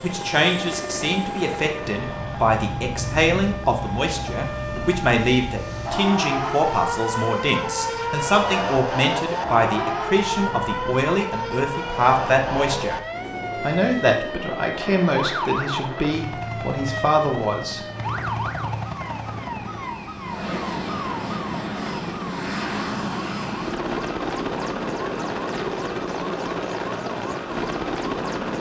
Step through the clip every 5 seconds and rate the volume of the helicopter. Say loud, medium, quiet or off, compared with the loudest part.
medium, quiet, medium, medium, loud, loud.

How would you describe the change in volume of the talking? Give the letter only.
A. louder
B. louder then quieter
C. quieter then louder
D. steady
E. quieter
D.